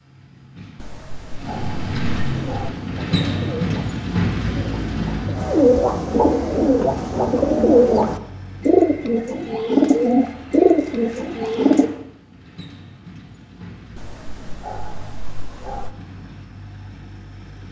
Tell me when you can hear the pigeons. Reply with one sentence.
The pigeons can be heard from 2.3 to 11.9 s.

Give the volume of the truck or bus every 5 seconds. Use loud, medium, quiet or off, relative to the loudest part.
loud, medium, quiet, quiet.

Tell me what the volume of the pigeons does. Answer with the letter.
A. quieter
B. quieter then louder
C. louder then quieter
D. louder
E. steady
D.